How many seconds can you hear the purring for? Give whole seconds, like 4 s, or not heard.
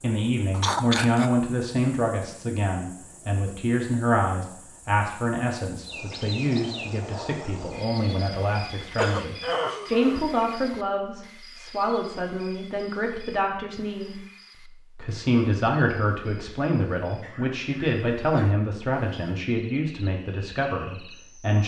not heard.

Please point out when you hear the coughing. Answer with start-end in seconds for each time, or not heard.
0.5-1.3, 8.8-10.2, 17.2-18.6.